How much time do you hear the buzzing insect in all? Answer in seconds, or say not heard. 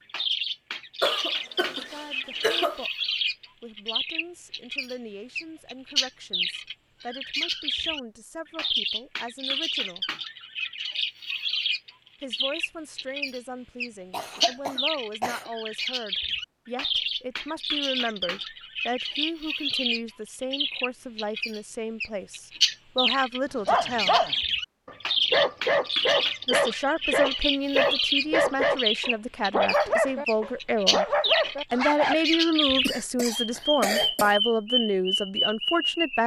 not heard.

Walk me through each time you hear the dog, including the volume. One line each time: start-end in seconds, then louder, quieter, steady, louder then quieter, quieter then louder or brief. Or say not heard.
23.6-32.1 steady.